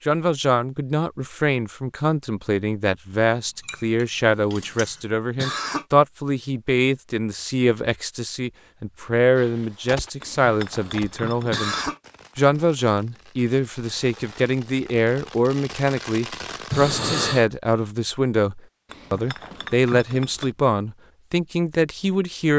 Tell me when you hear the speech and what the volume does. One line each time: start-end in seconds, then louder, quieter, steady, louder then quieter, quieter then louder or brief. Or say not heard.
0.1-22.5 steady.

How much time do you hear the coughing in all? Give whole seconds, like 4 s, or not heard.
2 s.